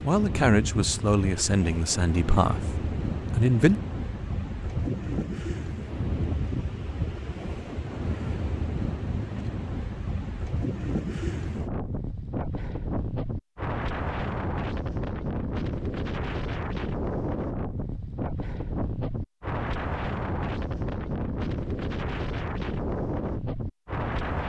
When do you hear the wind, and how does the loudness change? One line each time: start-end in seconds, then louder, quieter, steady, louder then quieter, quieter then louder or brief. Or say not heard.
0.0-24.4 steady.